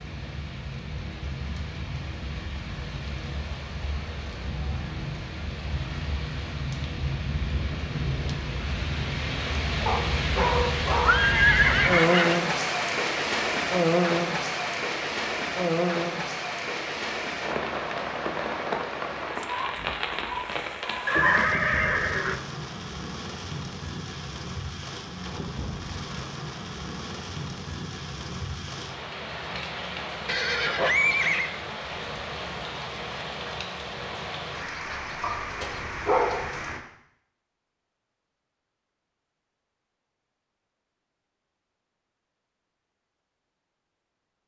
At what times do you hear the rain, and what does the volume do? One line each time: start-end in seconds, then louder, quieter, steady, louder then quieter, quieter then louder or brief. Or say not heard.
0.0-36.9 louder then quieter.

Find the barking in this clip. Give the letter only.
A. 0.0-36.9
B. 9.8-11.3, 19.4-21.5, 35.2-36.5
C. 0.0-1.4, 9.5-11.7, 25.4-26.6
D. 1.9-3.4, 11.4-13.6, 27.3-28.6
B.